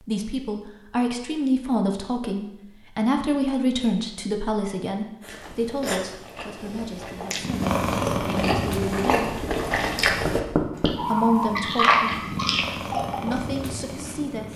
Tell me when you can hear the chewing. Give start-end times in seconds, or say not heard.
5.2-13.3.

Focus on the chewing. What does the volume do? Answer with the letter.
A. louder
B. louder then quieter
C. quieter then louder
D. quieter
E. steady
A.